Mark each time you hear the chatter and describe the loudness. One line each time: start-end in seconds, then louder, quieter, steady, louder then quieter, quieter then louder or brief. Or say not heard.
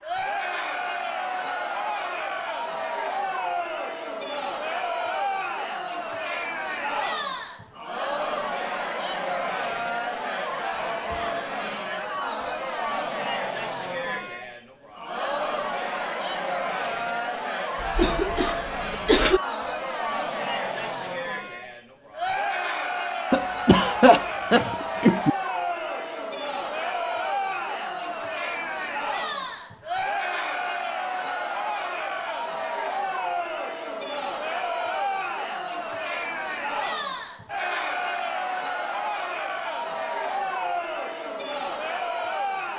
0.0-42.7 steady.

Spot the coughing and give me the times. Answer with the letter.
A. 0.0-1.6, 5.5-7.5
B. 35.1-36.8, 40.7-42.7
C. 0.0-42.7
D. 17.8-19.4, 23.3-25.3
D.